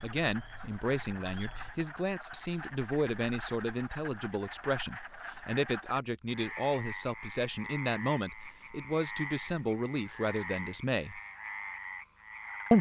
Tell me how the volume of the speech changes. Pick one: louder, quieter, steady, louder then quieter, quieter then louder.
steady.